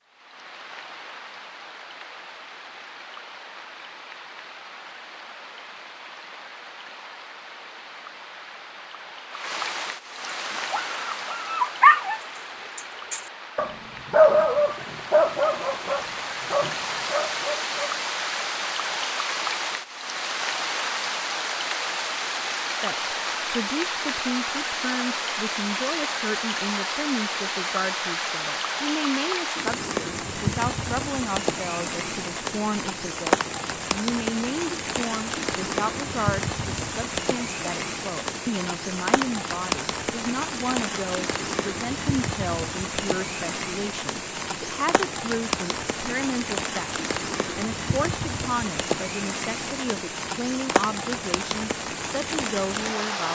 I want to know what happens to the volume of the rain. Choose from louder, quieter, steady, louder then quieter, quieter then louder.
louder.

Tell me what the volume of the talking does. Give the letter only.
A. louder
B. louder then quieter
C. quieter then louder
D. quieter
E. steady
E.